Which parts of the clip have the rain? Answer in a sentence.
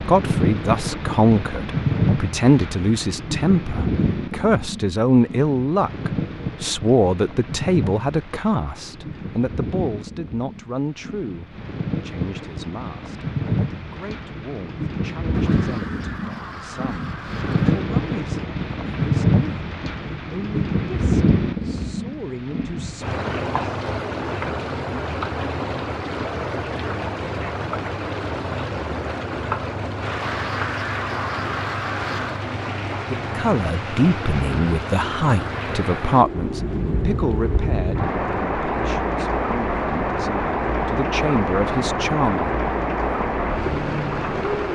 The rain can be heard from 0.0 to 44.6 s.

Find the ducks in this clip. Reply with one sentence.
You can hear the ducks from 15.3 to 17.9 s and from 30.1 to 32.5 s.